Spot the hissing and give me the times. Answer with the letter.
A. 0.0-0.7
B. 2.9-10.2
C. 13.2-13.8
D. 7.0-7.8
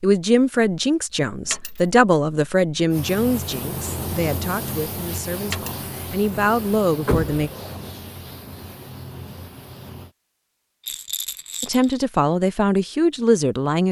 B.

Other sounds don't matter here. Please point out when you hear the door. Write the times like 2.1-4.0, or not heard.
7.0-7.8.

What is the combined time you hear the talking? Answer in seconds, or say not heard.
10 s.